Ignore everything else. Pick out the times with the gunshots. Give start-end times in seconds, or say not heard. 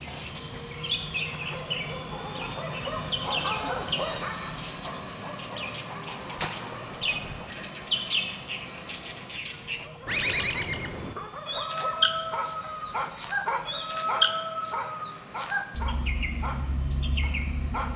6.3-7.5.